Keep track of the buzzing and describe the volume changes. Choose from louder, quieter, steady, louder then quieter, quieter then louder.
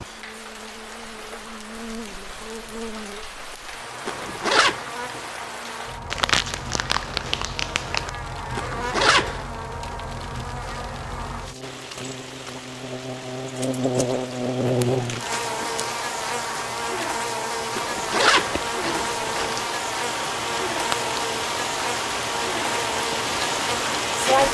louder.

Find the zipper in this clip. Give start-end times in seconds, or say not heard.
4.0-4.8, 8.6-9.4, 17.8-19.6.